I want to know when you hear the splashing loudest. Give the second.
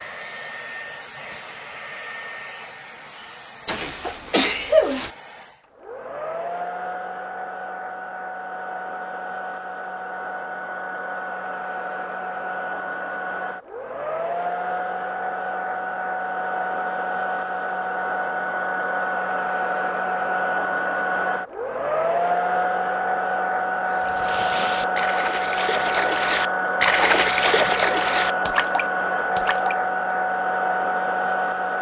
27 s.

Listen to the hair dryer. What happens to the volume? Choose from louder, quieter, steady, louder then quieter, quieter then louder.
louder.